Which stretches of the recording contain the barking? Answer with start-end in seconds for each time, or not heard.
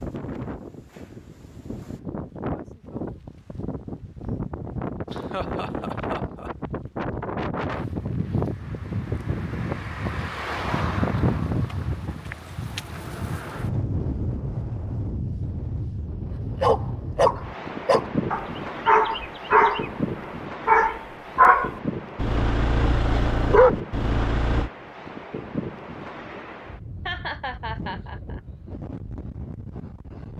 16.6-19.9, 20.6-24.7.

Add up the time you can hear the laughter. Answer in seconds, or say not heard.
3 s.